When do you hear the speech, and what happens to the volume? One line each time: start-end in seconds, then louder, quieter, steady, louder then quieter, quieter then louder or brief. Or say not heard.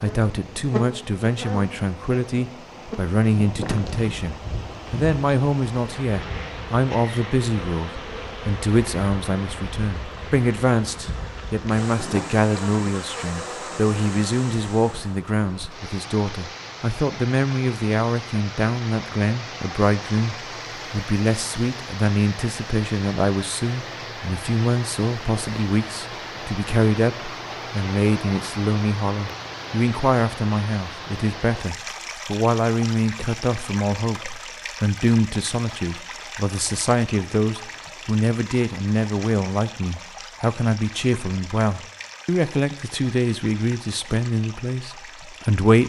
0.0-45.8 steady.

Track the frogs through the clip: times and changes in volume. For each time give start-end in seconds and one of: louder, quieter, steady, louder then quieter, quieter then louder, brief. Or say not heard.
not heard.